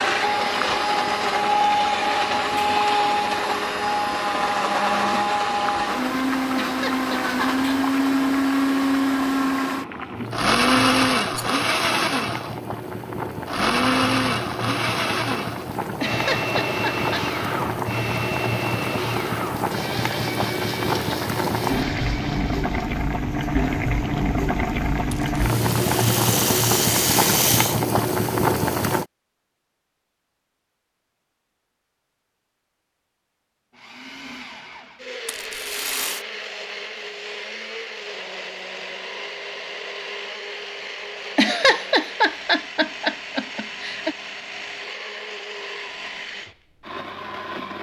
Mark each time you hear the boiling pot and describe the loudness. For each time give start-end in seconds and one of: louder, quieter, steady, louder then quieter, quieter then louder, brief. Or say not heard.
0.0-29.1 louder.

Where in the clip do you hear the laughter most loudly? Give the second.
42 s.